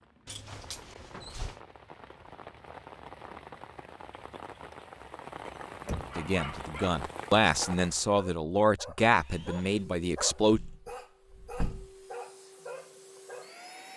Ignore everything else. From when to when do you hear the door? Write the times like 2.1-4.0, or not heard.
0.2-1.6, 5.5-6.2, 10.5-11.9.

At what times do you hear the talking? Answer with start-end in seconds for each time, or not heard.
6.2-10.6.